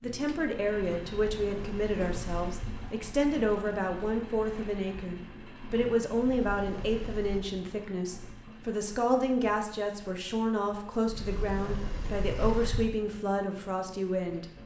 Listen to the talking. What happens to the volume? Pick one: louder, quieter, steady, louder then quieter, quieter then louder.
steady.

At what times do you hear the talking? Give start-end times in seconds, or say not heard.
0.0-14.4.